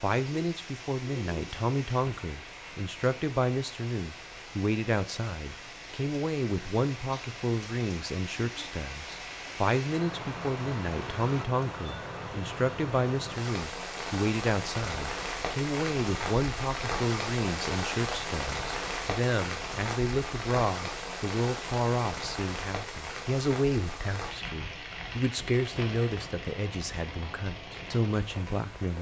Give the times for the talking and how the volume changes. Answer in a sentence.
You can hear the talking from 0.0 to 28.9 s, at a steady volume.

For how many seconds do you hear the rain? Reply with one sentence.
You can hear the rain for 29 seconds altogether.